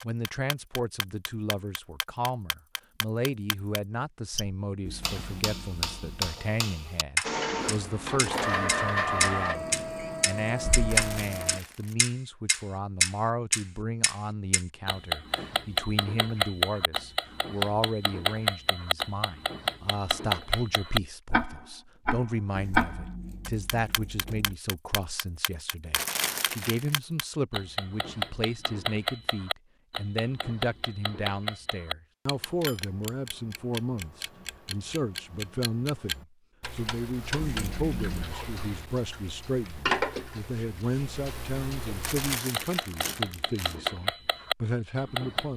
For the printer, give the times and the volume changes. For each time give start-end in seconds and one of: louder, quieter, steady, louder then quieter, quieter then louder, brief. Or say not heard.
7.2-11.6 louder then quieter.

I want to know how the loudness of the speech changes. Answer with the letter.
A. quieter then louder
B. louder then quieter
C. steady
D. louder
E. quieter
C.